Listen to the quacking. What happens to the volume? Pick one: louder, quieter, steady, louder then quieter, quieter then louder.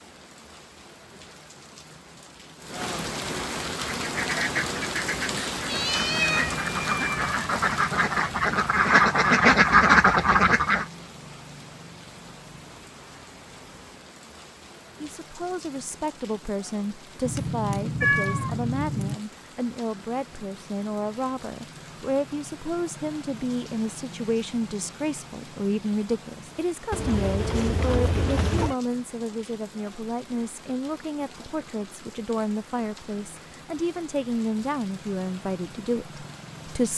louder.